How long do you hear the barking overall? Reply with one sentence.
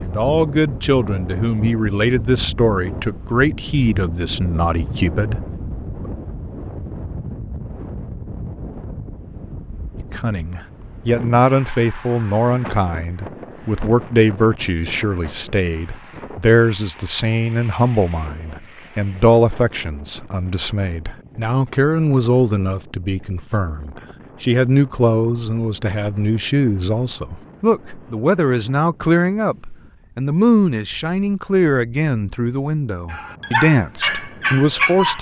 The barking can be heard for 2 seconds in total.